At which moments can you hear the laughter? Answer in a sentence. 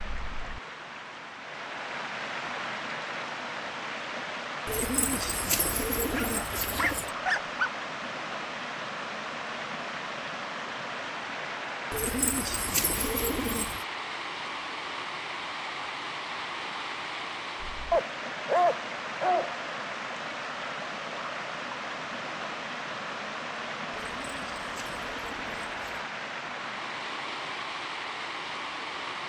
You can't hear the laughter here.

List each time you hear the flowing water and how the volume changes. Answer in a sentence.
The flowing water can be heard from 0.0 to 29.2 s, at a steady volume.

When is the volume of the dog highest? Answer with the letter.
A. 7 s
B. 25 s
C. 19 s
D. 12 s
C.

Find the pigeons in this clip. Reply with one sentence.
You can hear the pigeons from 4.7 to 7.1 s, from 11.9 to 13.8 s and from 23.9 to 25.9 s.